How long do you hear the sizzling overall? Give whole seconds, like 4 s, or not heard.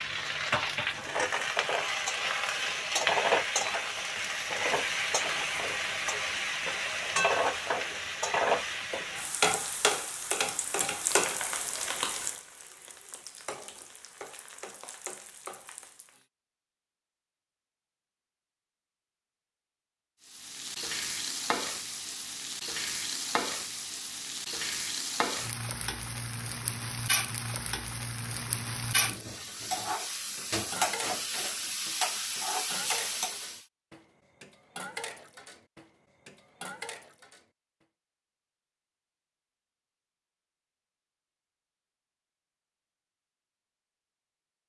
30 s.